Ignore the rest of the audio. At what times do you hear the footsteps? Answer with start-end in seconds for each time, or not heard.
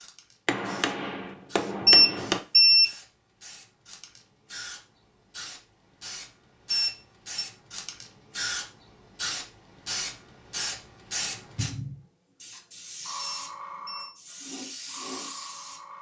not heard.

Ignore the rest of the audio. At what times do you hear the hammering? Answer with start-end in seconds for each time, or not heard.
0.5-2.4.